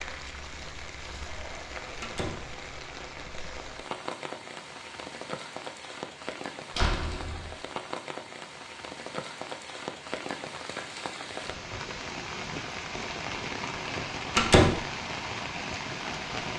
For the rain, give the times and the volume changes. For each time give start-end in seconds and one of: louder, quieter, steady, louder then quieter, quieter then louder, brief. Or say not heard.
0.0-16.5 louder.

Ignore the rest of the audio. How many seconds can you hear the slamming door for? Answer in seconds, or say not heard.
2 s.